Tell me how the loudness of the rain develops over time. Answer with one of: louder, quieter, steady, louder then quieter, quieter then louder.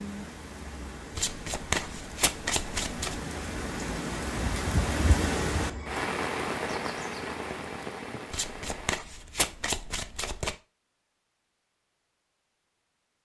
louder then quieter.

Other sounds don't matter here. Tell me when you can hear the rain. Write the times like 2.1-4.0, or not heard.
0.0-9.0.